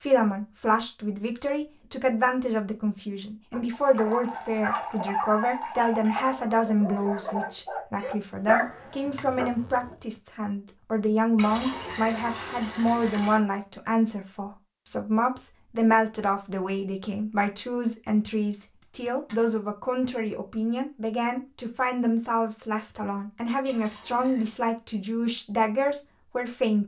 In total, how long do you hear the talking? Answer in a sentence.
You can hear the talking for 27 seconds altogether.